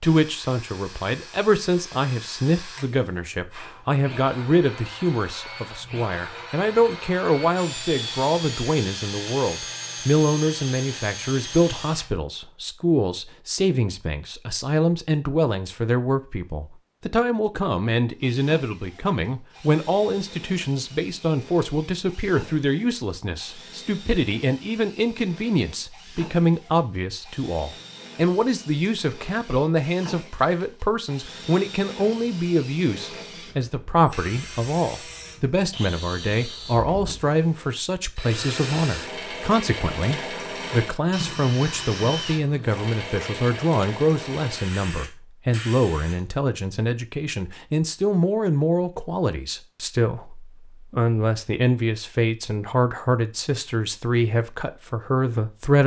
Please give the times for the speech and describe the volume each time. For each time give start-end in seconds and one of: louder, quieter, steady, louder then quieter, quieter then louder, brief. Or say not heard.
0.0-55.8 steady.